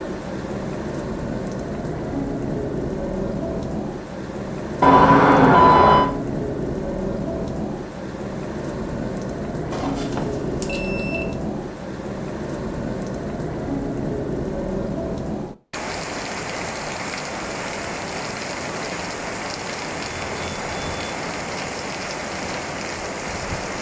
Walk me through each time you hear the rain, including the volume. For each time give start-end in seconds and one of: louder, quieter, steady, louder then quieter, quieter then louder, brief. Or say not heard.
0.0-23.7 steady.